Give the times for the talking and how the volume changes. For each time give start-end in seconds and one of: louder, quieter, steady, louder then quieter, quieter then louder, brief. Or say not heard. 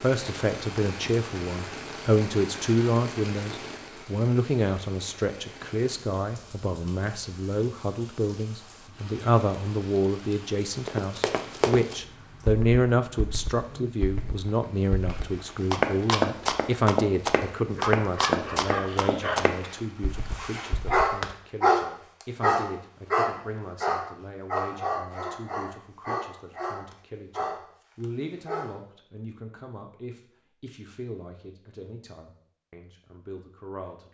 0.0-34.0 quieter.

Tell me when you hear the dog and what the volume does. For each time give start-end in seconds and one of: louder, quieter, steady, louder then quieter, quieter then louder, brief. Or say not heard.
17.8-28.8 louder then quieter.